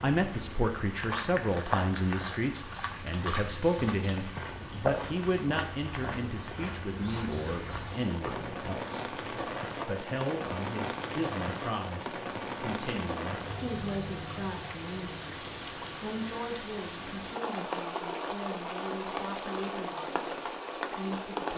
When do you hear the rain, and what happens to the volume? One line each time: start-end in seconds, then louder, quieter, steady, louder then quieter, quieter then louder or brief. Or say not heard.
0.0-21.5 louder.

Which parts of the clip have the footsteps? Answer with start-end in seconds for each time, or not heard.
0.9-9.8.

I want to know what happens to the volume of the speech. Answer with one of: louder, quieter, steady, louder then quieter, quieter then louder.
quieter.